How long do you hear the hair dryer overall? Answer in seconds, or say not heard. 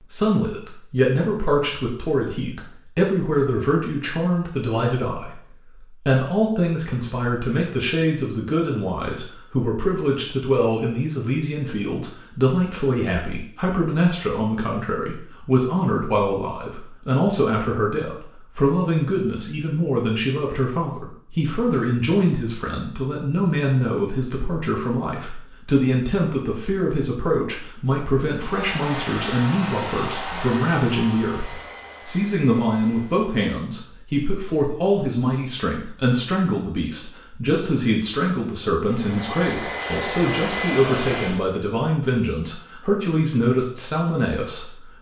8 s.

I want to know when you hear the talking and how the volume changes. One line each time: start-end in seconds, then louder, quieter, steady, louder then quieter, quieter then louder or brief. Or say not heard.
0.0-44.9 steady.